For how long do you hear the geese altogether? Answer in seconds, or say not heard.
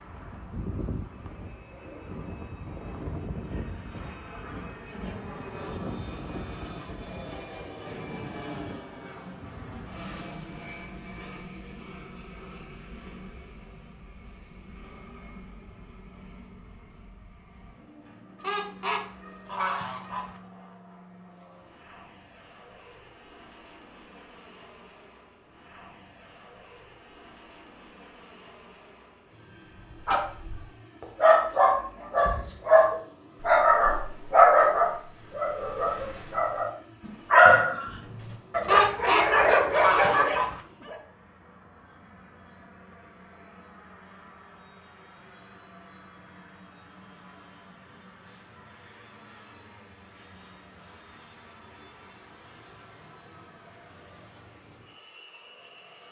4 s.